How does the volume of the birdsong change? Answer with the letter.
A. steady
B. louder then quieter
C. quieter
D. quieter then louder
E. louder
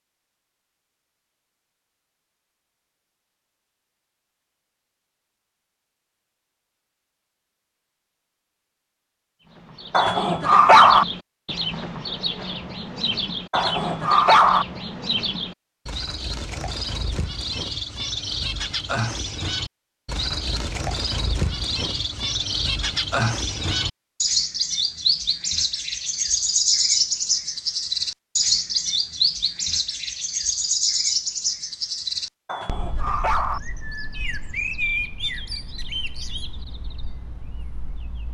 B.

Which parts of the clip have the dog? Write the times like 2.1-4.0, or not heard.
9.9-11.1, 13.5-14.7, 32.5-33.6.